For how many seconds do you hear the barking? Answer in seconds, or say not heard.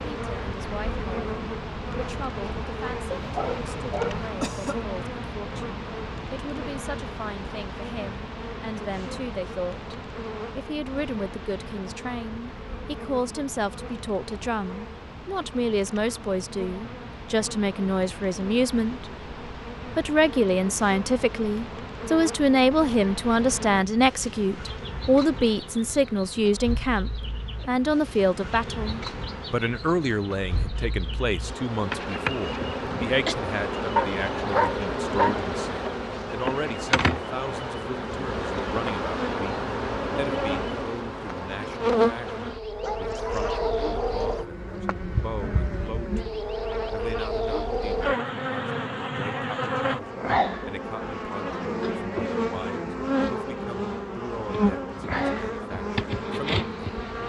4 s.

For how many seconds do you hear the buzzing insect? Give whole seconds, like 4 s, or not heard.
57 s.